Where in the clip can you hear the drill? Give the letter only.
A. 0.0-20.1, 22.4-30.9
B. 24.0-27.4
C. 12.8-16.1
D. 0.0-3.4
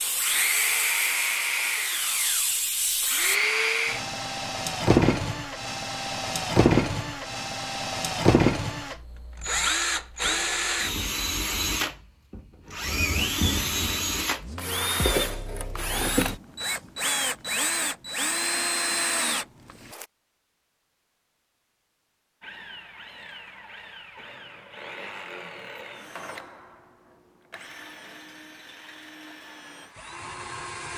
A.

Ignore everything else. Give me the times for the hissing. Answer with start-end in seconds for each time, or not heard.
0.0-3.4.